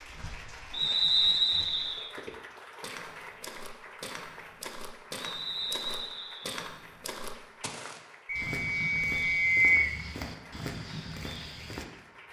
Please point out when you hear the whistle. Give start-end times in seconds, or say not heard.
0.7-2.1, 5.2-6.7, 8.2-9.9.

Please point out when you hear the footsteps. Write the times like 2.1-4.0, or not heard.
2.1-11.8.